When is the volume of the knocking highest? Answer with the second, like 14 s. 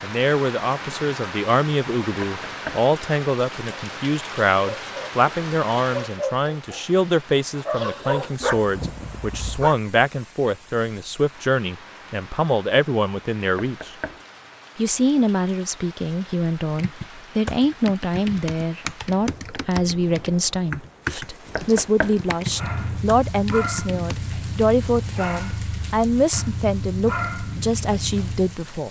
22 s.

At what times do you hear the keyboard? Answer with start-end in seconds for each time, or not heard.
16.7-24.1.